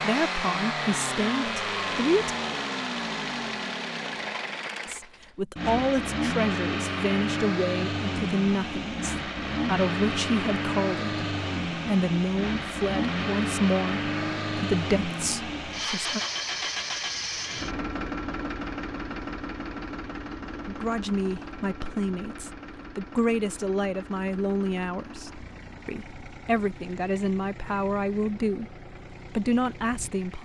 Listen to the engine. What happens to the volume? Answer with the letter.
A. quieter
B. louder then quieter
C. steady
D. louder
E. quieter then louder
A.